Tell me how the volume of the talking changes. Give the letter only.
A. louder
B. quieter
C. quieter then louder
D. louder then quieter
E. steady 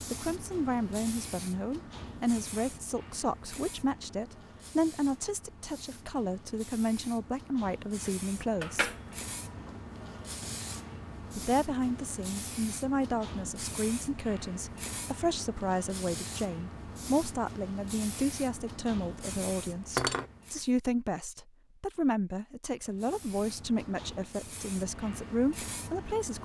E.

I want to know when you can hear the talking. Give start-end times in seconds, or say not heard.
0.1-8.9, 11.3-26.3.